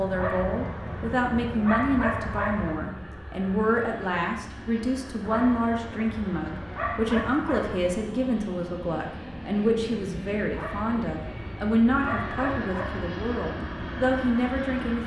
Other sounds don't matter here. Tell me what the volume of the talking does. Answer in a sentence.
The loudness of the talking stays about the same.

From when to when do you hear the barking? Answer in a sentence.
The barking can be heard from 0.1 to 2.8 s, from 5.2 to 8.1 s and from 10.5 to 13.2 s.